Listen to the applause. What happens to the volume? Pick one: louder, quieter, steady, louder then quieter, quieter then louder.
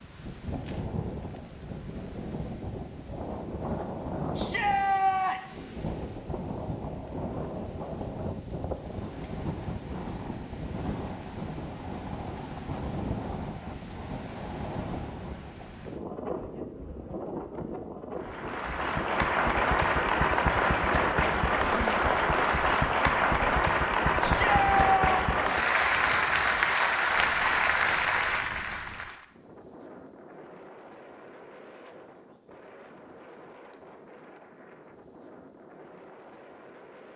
steady.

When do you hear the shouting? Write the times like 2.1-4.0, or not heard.
4.3-5.6, 24.2-25.4.